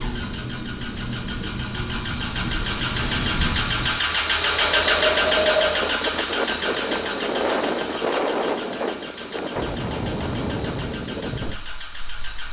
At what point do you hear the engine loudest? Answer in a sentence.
The loudest moment of the engine is at 5 seconds.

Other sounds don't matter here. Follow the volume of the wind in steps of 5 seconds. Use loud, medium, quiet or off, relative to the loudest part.
medium, loud, medium.